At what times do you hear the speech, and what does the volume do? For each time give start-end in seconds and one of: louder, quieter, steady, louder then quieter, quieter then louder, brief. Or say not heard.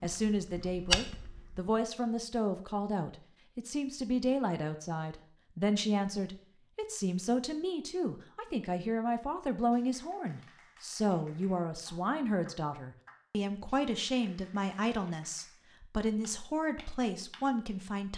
0.0-18.1 steady.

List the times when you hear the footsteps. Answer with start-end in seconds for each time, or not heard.
0.0-1.8.